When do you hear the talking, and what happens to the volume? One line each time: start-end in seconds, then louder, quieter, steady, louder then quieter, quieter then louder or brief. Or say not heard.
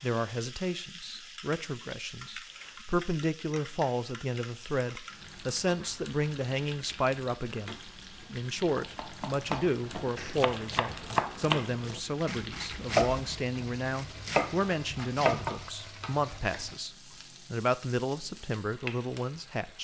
0.0-19.8 steady.